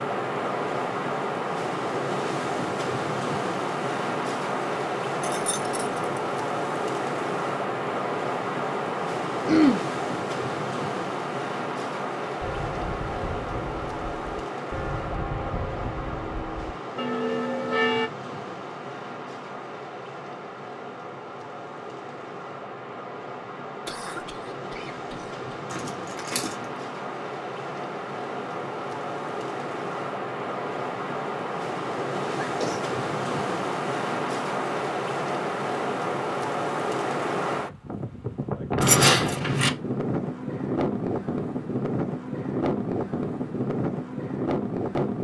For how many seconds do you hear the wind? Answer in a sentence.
The wind can be heard for 45 seconds in total.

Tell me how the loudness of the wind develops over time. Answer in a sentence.
The loudness of the wind goes down, then up.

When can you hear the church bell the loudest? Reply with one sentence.
The volume of the church bell peaks at 18 seconds.